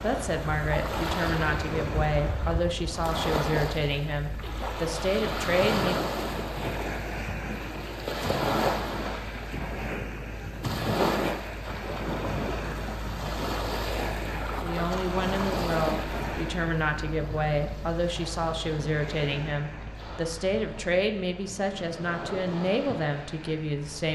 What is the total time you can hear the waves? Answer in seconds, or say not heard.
24 s.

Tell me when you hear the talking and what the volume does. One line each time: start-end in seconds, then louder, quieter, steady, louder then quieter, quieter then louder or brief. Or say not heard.
0.0-6.1 steady
14.6-24.0 steady.